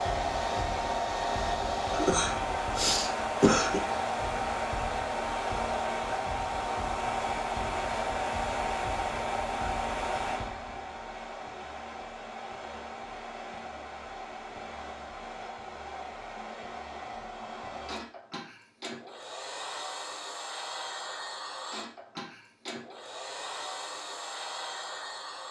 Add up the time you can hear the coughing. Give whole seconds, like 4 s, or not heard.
2 s.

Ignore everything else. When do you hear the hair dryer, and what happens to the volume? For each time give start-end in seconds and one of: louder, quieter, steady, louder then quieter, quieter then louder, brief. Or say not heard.
0.0-25.4 quieter.